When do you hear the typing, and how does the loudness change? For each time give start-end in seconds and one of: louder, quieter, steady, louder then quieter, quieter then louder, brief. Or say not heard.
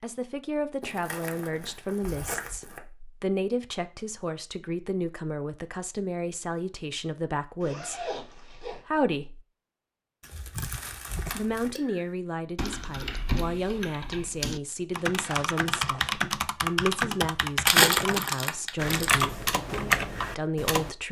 10.6-20.9 louder.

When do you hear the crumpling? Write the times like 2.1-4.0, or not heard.
0.8-2.8, 10.2-11.7, 17.6-19.2.